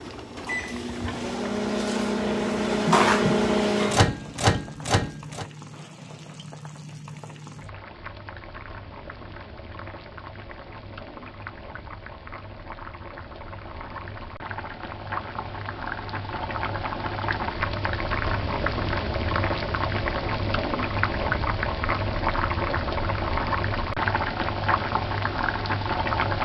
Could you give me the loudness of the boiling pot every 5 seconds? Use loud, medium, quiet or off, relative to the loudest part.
quiet, quiet, quiet, loud, loud, loud.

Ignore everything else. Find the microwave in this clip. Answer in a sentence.
You can hear the microwave from 0.0 to 5.5 s.